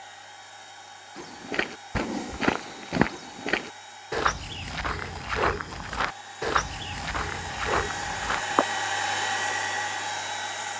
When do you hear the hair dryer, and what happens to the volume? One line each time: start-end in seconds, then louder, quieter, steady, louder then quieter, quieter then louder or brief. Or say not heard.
0.0-10.7 louder.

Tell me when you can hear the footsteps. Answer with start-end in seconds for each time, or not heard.
1.1-8.7.